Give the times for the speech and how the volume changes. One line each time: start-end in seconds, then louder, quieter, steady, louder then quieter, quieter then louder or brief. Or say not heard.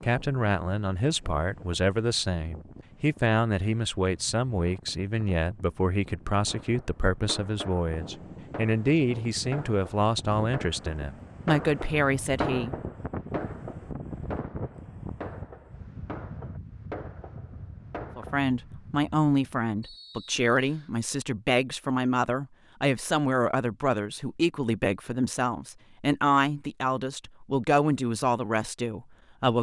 0.0-12.8 steady
18.1-29.5 steady.